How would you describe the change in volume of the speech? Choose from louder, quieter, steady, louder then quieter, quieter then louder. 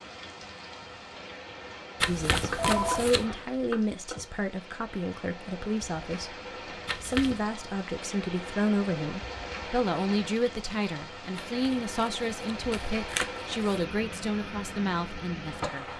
steady.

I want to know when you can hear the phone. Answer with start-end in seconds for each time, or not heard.
2.3-4.2.